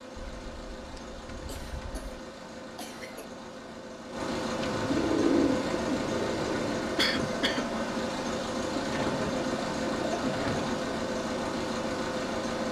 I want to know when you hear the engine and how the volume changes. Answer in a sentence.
The engine can be heard from 0.0 to 12.6 s, getting louder.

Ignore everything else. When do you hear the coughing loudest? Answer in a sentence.
The loudest moment of the coughing is at 7 seconds.